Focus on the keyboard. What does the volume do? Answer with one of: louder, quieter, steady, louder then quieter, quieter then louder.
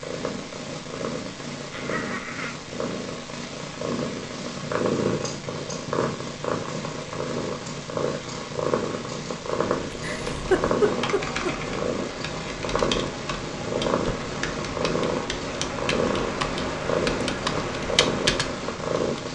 louder.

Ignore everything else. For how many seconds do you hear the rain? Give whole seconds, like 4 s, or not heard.
not heard.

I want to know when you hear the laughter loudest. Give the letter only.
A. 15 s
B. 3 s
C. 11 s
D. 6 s
C.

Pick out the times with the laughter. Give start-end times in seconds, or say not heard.
1.7-2.5, 9.9-11.5.